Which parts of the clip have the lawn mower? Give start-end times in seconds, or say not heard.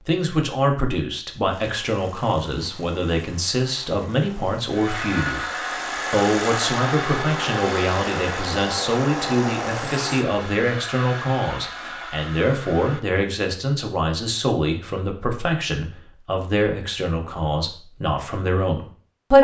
1.4-10.2.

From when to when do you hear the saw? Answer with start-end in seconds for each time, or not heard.
4.7-13.2.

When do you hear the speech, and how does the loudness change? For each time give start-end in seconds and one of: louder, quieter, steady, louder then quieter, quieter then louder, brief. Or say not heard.
0.1-5.5 steady
6.1-19.3 steady.